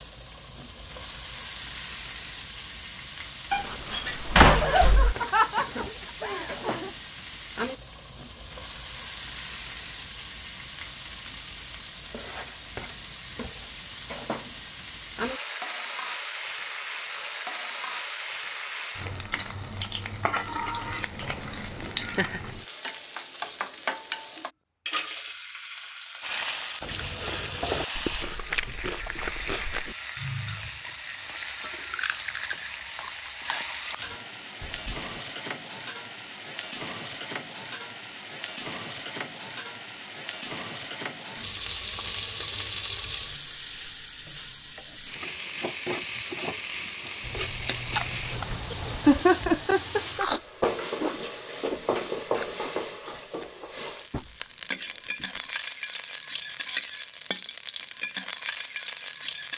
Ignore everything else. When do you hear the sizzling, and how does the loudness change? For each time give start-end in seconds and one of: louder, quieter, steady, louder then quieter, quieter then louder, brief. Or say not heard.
0.0-59.5 steady.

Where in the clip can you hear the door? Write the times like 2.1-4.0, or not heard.
3.5-5.2.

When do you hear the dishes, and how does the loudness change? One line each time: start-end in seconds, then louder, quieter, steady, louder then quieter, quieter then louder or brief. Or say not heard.
not heard.